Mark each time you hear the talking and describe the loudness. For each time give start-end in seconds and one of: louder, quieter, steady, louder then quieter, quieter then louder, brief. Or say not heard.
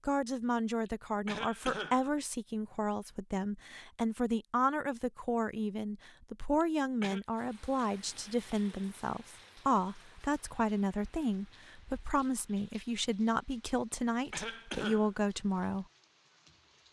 0.1-15.8 steady.